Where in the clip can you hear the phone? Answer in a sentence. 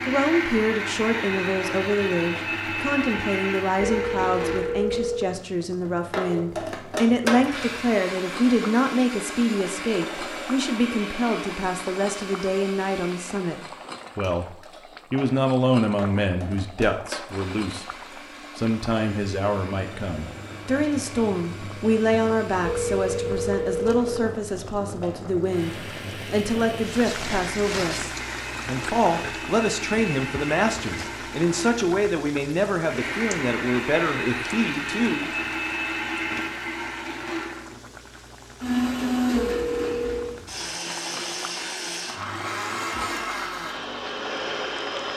You can hear the phone from 3.9 to 5.2 s, from 22.6 to 24.1 s and from 39.4 to 40.3 s.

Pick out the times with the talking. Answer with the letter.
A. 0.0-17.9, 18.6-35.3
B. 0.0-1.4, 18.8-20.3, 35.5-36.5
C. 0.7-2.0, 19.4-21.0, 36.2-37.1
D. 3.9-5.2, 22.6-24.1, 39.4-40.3
A.